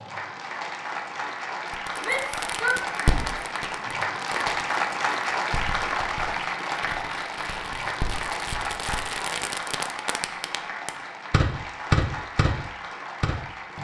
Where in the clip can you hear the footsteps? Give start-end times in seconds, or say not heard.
not heard.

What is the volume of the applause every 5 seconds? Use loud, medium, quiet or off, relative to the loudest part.
loud, loud, medium.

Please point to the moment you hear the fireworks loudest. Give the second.
12 s.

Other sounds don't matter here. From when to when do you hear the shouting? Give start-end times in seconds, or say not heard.
2.0-3.4.